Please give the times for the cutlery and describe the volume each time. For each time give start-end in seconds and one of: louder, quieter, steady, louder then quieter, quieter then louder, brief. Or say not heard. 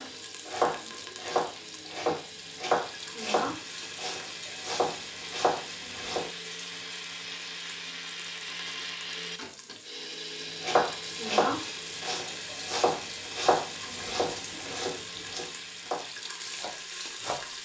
not heard.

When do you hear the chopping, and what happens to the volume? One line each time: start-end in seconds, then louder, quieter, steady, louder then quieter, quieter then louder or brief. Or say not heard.
0.0-6.3 quieter then louder
10.6-17.4 quieter.